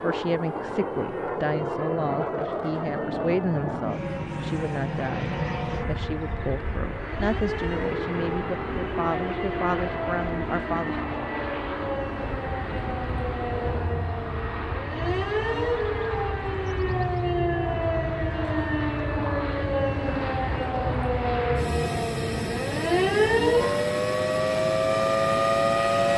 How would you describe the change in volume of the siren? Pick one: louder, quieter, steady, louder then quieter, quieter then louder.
louder.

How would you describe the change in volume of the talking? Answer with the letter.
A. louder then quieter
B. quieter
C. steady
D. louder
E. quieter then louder
C.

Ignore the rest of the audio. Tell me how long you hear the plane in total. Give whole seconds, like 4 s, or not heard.
26 s.